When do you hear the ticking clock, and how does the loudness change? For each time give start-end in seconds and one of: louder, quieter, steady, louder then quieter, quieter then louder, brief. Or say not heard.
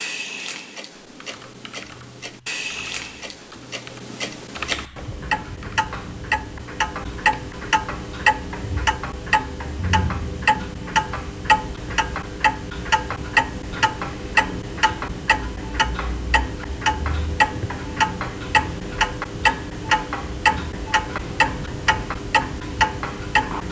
0.0-23.6 louder.